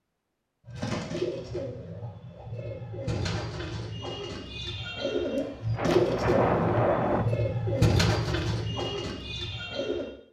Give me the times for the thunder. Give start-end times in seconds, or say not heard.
5.7-7.2.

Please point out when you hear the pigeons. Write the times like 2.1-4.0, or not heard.
0.7-10.1.